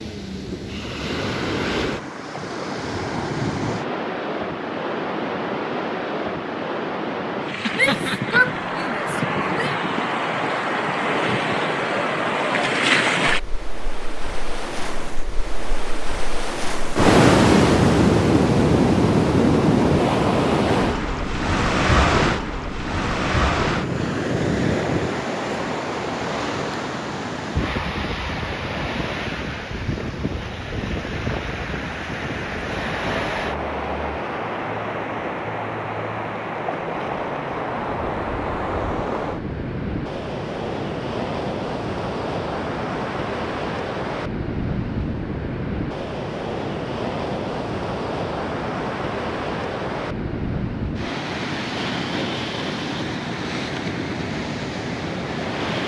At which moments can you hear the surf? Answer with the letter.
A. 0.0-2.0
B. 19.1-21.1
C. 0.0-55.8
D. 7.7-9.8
C.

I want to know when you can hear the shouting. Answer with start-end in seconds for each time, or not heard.
7.7-9.8.